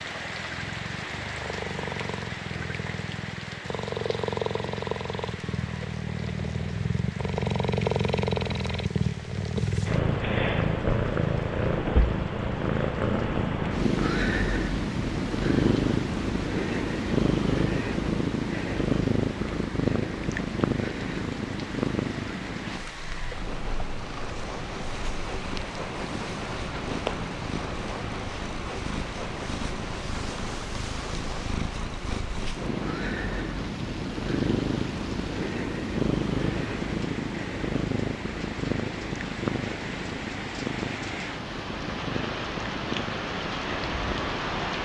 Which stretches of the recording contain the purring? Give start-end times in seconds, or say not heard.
0.0-44.5.